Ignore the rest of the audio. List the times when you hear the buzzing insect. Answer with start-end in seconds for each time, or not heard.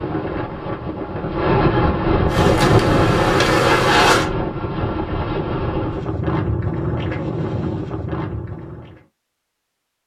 2.2-4.2.